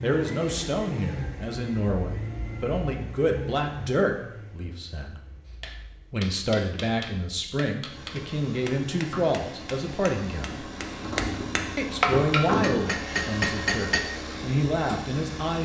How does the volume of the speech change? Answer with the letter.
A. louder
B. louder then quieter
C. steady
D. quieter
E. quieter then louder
C.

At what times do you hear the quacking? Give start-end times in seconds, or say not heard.
not heard.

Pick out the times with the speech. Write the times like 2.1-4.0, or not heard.
0.0-5.2, 6.1-10.7, 11.8-15.5.